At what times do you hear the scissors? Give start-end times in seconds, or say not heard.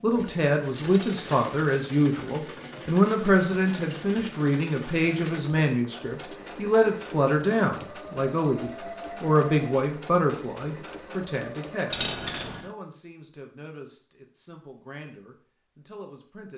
not heard.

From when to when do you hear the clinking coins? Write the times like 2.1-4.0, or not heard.
0.9-1.3, 11.9-12.7.